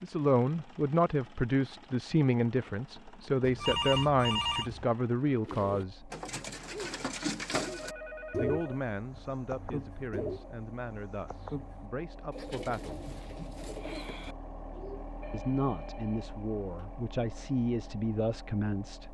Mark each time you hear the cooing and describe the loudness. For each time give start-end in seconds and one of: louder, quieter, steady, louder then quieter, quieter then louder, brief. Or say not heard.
5.5-15.1 quieter.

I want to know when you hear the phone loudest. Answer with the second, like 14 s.
4 s.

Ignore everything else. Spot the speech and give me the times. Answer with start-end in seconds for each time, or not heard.
0.0-6.1, 8.3-13.1, 15.3-19.0.